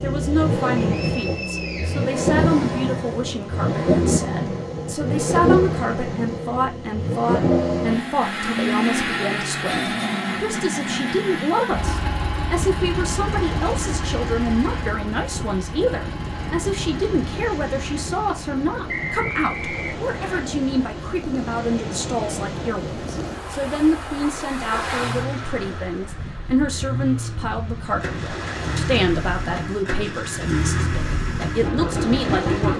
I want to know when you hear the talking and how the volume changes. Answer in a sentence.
The talking can be heard from 0.0 to 32.7 s, at a steady volume.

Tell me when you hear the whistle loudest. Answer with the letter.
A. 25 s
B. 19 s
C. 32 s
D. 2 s
B.